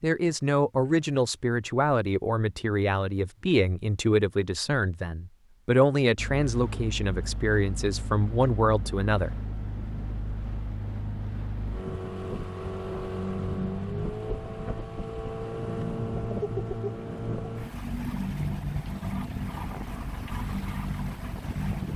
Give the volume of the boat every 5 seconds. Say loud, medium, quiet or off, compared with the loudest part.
off, medium, loud, loud, loud.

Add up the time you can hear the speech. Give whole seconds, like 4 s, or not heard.
9 s.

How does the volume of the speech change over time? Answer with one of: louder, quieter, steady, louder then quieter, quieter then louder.
steady.